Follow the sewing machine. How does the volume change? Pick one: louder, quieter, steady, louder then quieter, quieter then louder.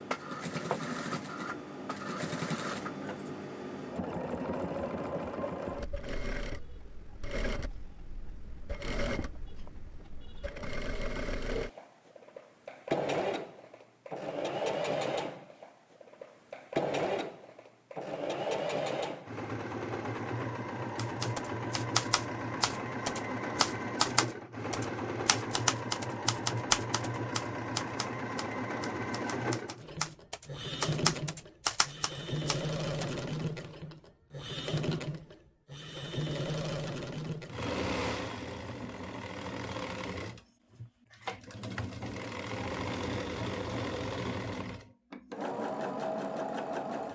steady.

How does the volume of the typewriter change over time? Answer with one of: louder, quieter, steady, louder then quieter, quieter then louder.
quieter then louder.